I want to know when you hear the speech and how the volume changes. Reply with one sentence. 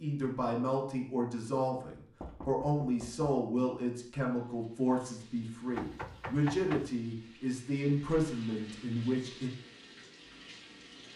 The speech can be heard from 0.0 to 9.5 s, at a steady volume.